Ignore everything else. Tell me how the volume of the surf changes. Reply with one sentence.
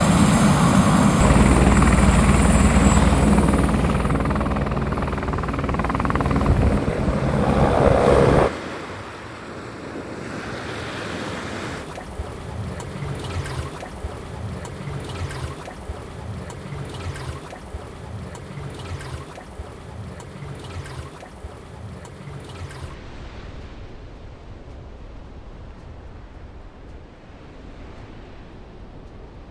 The loudness of the surf goes down.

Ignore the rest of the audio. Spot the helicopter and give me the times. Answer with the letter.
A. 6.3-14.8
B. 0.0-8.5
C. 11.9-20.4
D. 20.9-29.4
B.